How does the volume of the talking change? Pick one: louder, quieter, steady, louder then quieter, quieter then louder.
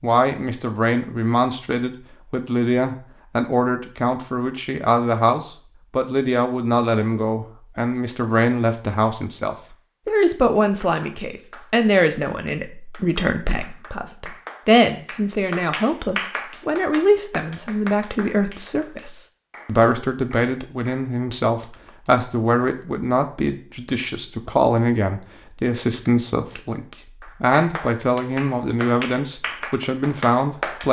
steady.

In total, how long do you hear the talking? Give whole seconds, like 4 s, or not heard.
31 s.